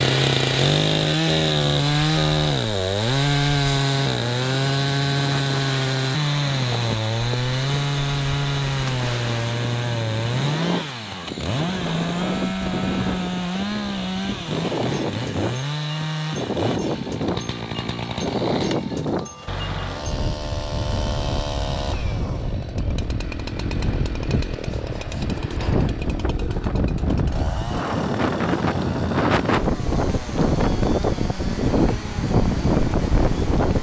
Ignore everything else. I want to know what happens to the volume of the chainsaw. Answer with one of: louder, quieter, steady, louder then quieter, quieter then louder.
quieter.